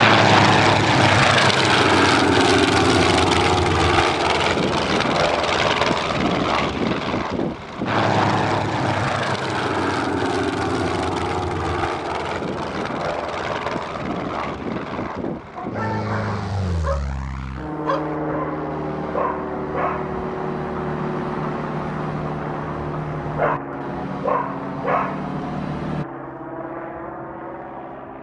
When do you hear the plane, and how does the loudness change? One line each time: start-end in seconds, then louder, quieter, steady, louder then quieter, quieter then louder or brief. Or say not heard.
0.0-28.1 quieter.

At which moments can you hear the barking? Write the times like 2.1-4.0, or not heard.
15.6-26.1.